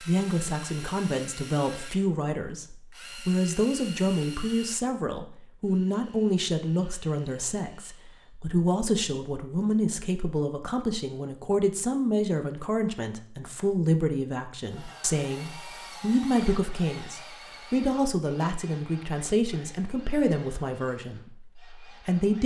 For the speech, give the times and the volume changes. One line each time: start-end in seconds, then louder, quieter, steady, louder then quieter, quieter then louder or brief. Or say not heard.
0.0-22.4 steady.